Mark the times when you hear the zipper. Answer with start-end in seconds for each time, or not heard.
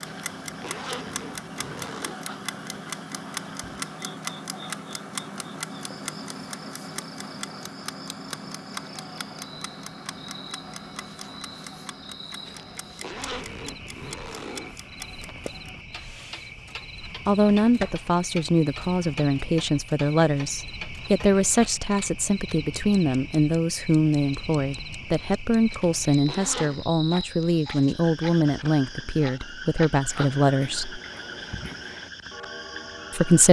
0.1-2.2, 12.4-14.8, 25.7-26.9.